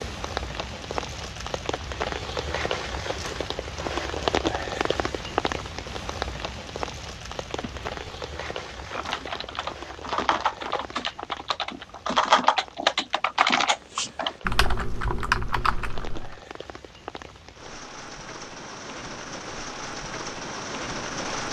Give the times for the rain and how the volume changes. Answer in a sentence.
The rain can be heard from 0.0 to 21.4 s, getting quieter then louder.